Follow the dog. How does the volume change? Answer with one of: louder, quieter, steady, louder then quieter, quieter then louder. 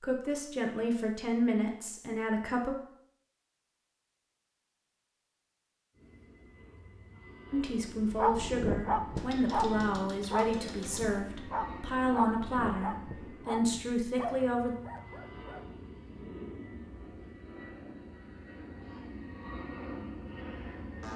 quieter.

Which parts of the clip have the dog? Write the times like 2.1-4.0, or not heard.
8.1-15.7.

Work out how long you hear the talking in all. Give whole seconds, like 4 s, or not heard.
10 s.